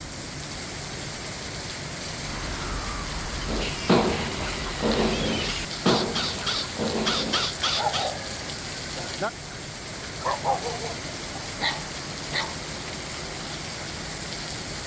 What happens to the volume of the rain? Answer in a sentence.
The loudness of the rain stays about the same.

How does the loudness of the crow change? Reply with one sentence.
The loudness of the crow goes up.